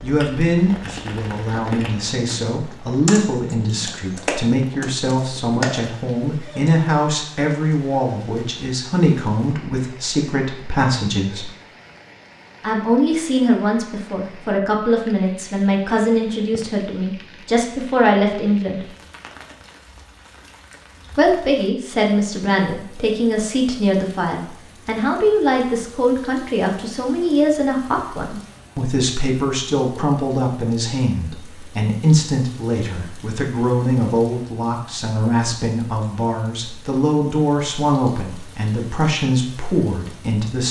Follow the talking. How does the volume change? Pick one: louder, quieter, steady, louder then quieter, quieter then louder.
steady.